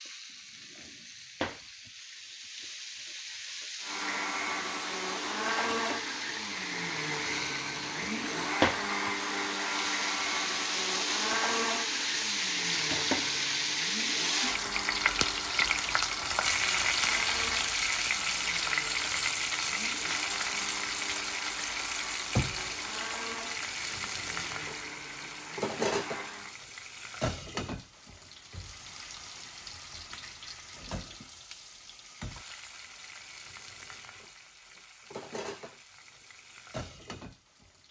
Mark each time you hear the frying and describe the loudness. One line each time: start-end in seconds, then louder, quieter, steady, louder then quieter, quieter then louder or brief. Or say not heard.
0.0-37.8 louder then quieter.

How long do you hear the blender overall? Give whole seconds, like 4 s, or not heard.
23 s.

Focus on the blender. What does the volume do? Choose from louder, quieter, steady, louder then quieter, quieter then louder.
quieter.